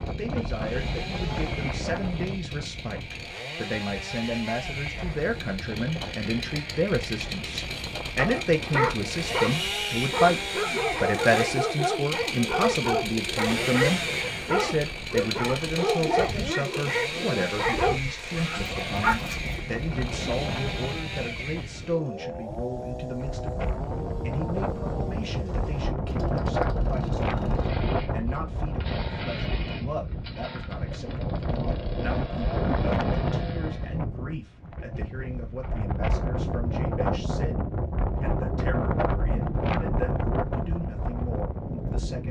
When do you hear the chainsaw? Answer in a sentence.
The chainsaw can be heard from 0.0 to 34.0 s.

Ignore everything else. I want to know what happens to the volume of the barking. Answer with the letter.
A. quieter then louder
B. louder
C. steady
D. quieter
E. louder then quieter
C.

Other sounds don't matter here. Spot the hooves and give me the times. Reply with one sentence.
You can't hear the hooves here.